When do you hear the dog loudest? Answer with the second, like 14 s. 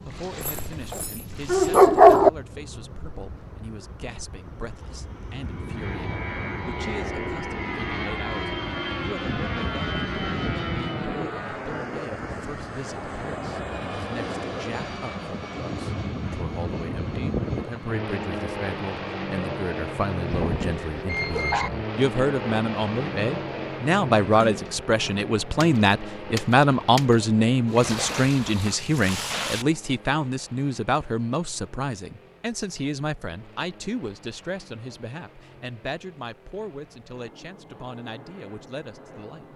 2 s.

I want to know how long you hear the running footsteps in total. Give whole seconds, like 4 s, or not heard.
not heard.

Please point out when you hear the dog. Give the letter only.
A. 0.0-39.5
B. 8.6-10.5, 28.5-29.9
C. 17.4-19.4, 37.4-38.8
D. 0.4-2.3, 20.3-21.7
D.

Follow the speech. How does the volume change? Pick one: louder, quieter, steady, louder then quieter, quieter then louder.
louder then quieter.